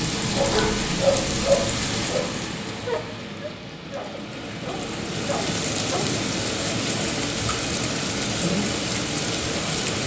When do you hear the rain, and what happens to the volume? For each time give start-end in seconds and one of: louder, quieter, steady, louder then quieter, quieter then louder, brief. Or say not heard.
0.0-10.0 quieter then louder.